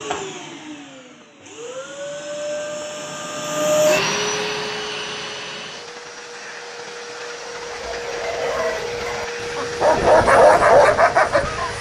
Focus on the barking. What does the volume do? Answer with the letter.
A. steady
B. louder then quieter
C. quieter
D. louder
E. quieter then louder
D.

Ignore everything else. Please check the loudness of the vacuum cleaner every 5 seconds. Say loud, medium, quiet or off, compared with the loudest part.
loud, medium, medium.